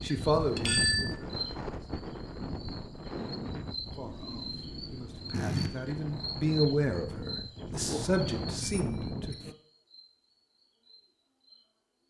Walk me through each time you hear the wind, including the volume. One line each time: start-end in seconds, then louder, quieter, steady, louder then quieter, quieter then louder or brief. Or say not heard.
0.0-9.6 quieter then louder.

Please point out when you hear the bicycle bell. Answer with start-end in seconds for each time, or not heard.
0.1-1.1, 5.3-6.0, 8.6-9.3.